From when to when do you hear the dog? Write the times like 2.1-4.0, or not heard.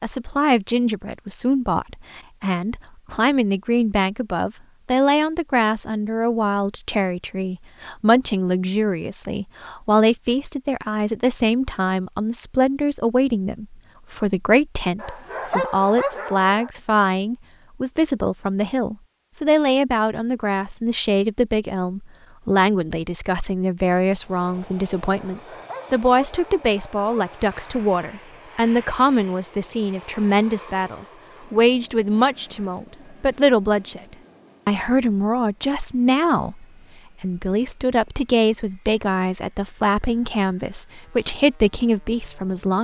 14.9-16.7, 25.3-27.4.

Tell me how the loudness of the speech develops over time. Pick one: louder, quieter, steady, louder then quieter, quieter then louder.
steady.